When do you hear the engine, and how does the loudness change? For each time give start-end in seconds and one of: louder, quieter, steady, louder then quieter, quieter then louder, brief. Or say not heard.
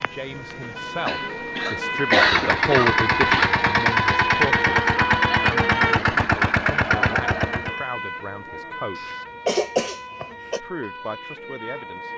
1.9-7.8 steady.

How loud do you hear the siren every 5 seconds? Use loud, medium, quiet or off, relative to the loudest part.
loud, loud, medium.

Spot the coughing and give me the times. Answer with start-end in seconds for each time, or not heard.
1.1-3.5, 8.9-10.6.